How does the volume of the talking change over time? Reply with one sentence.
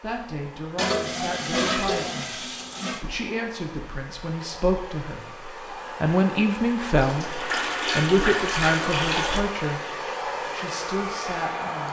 The loudness of the talking goes up, then down.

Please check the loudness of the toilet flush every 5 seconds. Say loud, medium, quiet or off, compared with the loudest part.
loud, loud, off.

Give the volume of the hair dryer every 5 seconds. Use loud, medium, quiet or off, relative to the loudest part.
quiet, loud, loud.